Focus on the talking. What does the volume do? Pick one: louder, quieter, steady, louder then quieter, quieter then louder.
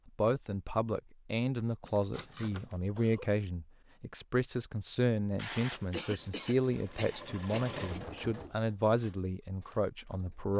steady.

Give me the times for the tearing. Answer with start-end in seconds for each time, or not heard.
1.9-2.8, 5.3-6.0.